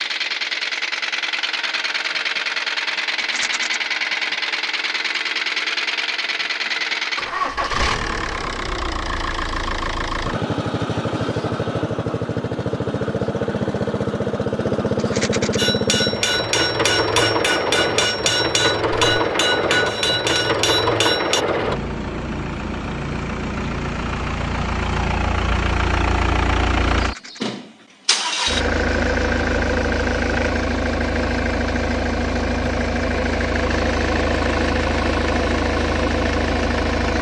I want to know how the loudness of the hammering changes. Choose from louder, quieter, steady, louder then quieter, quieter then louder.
steady.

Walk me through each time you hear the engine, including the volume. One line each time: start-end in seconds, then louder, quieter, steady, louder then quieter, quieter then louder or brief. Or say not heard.
0.0-37.1 steady.